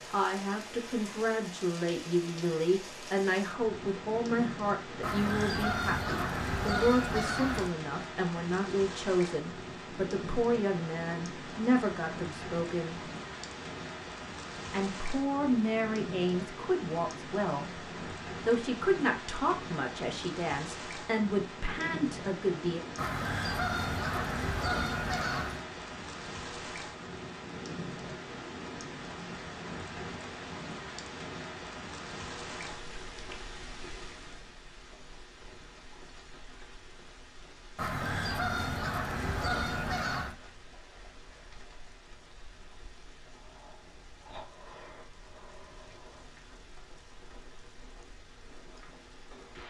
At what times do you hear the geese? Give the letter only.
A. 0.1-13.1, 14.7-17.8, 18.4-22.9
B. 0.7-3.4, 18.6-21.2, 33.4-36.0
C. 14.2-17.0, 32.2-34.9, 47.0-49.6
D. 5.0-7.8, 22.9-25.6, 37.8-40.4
D.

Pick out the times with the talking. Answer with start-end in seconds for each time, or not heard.
0.1-13.1, 14.7-17.8, 18.4-22.9.